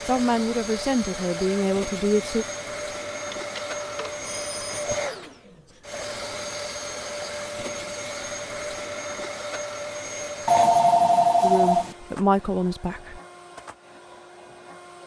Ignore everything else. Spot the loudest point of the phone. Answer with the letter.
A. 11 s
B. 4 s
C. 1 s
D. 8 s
A.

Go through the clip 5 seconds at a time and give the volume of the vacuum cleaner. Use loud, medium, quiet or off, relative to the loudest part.
loud, loud, medium.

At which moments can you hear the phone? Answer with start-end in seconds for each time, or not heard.
3.3-4.8, 10.4-11.9.